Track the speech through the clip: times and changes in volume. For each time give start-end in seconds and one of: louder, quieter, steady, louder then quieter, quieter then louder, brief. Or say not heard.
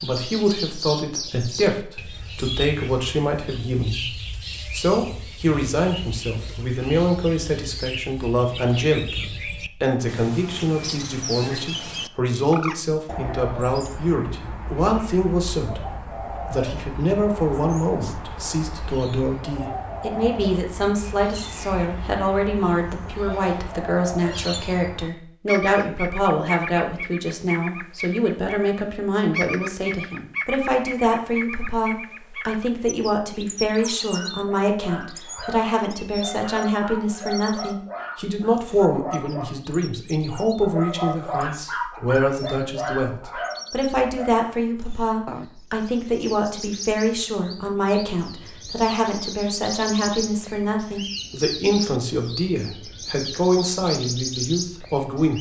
0.0-55.3 steady.